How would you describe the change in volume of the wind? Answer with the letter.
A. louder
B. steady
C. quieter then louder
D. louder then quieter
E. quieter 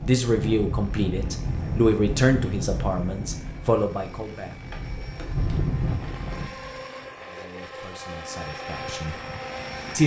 C.